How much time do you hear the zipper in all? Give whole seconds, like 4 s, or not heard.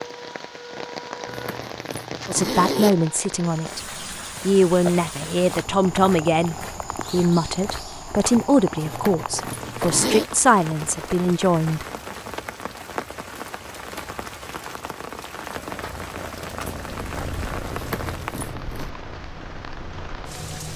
4 s.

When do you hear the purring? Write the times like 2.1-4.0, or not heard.
15.6-20.6.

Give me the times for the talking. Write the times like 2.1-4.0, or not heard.
2.2-3.8, 4.5-11.8.